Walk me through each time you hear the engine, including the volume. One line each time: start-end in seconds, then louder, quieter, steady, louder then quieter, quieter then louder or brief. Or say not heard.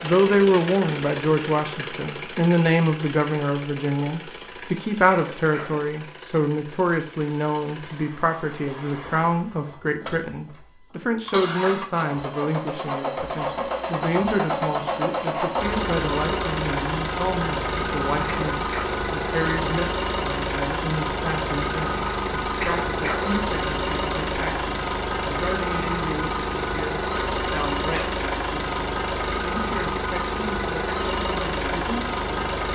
0.0-32.6 louder.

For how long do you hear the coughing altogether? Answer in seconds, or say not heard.
2 s.